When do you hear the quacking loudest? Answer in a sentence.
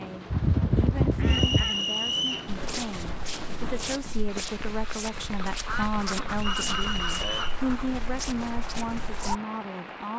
The volume of the quacking peaks at 1 second.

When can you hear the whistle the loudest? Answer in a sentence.
The volume of the whistle peaks at 2 seconds.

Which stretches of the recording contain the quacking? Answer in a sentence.
You can hear the quacking from 0.3 to 1.8 s and from 5.5 to 8.0 s.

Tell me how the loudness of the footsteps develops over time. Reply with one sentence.
The volume of the footsteps stays about the same.